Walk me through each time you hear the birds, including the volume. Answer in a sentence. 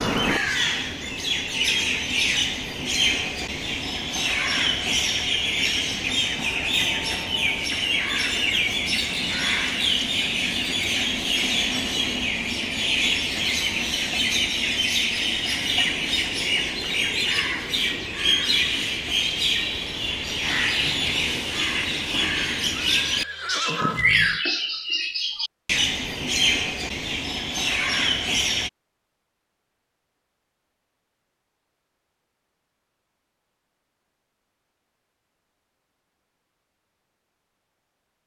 You can hear the birds from 0.0 to 28.7 s, at a steady volume.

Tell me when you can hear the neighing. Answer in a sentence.
You can hear the neighing from 22.8 to 24.4 s.